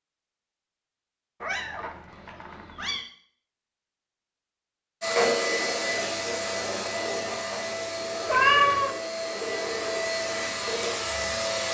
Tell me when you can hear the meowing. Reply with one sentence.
You can hear the meowing from 1.4 to 3.0 s and from 8.2 to 8.9 s.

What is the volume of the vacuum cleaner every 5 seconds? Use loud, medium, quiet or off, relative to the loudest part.
off, loud, loud.